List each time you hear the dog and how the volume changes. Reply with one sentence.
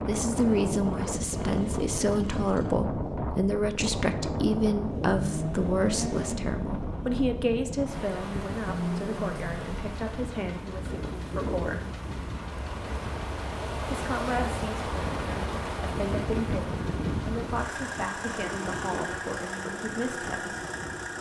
You can't hear the dog here.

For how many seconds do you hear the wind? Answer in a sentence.
You can hear the wind for 21 seconds altogether.